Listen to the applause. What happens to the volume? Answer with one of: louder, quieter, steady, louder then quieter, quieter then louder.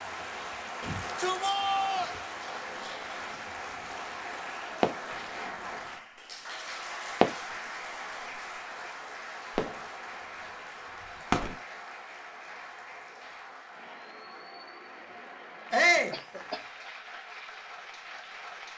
quieter.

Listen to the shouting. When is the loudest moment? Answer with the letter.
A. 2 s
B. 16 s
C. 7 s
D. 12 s
B.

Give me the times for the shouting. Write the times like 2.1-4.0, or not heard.
0.8-2.1, 15.7-16.1.